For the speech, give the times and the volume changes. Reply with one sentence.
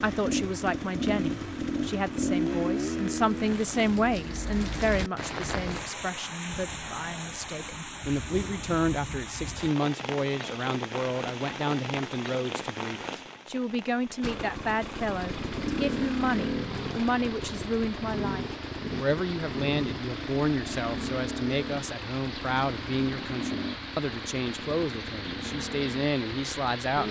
The speech can be heard from 0.0 to 27.0 s, at a steady volume.